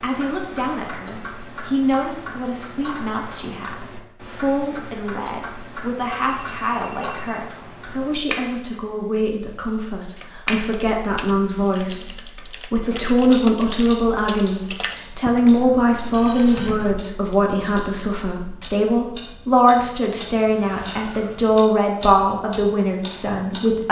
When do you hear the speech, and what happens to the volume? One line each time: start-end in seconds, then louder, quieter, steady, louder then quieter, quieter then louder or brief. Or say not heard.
0.0-23.8 louder.